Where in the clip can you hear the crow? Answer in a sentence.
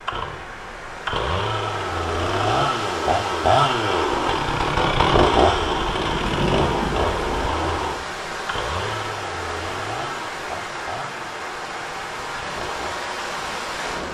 The crow can't be heard in this clip.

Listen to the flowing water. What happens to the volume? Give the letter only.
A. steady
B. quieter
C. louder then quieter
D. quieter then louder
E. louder
A.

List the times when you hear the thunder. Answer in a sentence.
The thunder can be heard from 5.5 to 7.5 s.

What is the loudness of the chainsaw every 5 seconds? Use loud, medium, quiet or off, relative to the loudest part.
loud, loud, quiet.